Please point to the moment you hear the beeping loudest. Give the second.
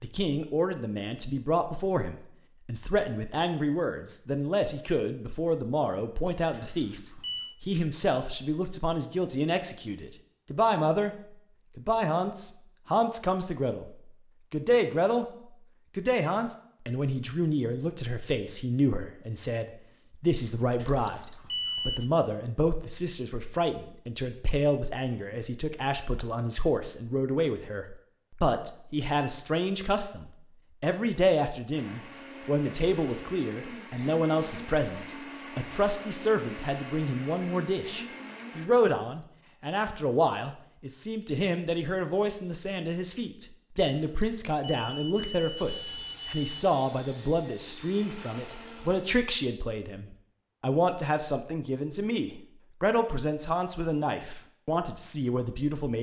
22 s.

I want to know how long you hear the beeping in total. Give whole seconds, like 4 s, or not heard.
5 s.